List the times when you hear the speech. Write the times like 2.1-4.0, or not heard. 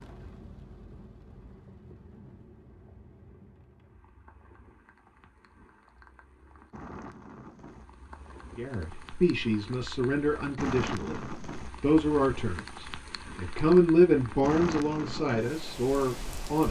8.6-16.6.